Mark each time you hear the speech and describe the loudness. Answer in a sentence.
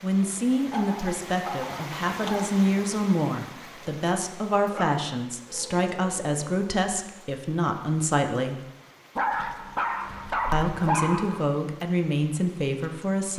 You can hear the speech from 0.0 to 8.6 s, at a steady volume; and briefly from 10.5 to 13.3 s.